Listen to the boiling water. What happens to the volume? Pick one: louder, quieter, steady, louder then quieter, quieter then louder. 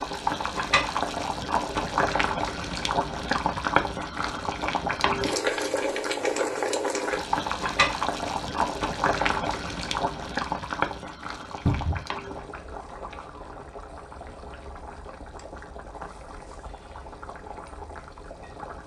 quieter.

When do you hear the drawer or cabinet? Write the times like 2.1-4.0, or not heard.
11.7-12.1.